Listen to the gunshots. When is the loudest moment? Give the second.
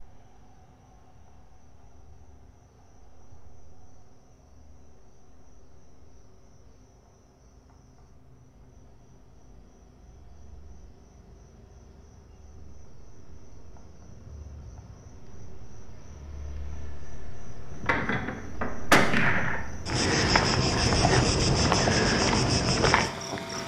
19 s.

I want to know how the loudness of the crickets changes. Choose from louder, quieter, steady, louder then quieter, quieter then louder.
louder.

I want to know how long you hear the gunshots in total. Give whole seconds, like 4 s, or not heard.
2 s.